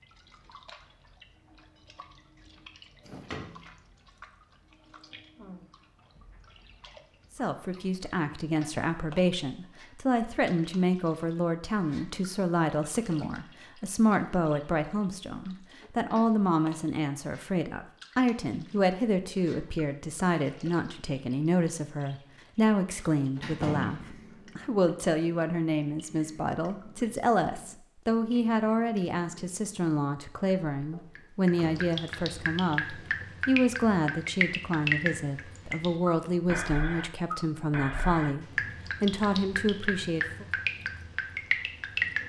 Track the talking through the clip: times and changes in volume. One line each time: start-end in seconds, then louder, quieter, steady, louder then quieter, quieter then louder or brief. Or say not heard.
7.3-40.5 steady.